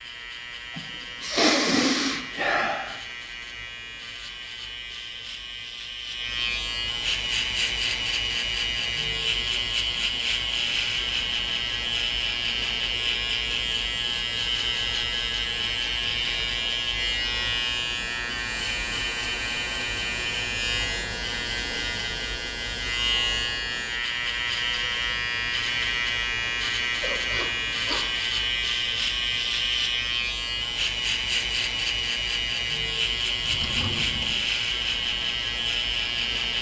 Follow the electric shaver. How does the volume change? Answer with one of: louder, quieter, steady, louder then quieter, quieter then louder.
louder.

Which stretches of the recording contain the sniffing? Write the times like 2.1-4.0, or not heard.
0.8-3.0, 27.0-28.1.